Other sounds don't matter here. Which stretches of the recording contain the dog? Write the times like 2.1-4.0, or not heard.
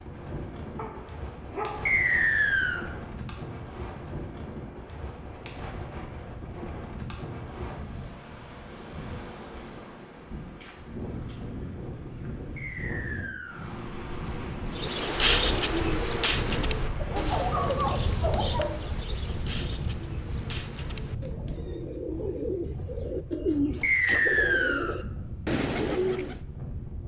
0.8-1.9, 17.0-18.9.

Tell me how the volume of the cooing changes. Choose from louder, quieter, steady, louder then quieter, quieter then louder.
quieter then louder.